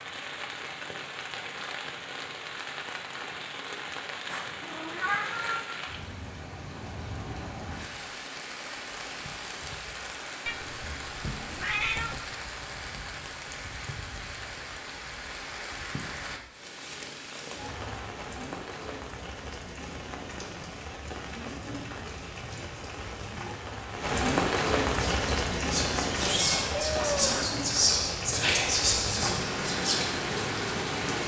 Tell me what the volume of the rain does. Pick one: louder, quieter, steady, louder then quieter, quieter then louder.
louder.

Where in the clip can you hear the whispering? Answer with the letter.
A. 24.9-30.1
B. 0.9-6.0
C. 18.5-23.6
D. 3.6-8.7
A.